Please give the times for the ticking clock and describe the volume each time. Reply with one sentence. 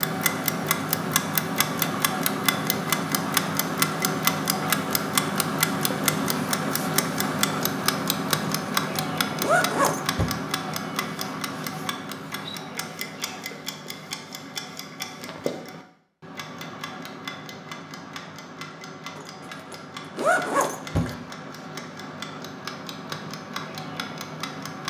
The ticking clock can be heard from 0.0 to 24.8 s, getting quieter.